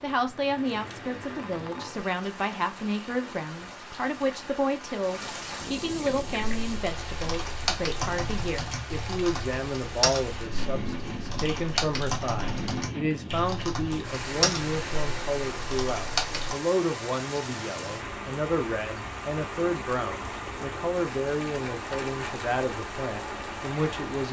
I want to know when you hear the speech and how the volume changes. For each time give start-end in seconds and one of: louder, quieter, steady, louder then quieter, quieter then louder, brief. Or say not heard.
0.0-24.2 steady.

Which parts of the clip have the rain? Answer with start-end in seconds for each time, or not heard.
0.0-24.2.